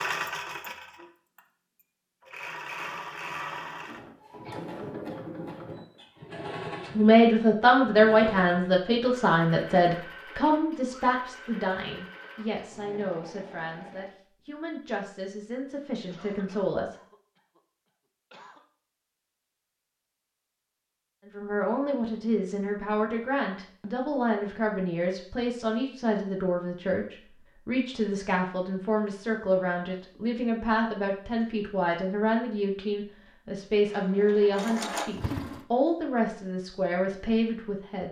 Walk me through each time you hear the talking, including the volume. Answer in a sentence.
You can hear the talking from 7.0 to 16.9 s, getting quieter; and from 21.2 to 38.0 s, at a steady volume.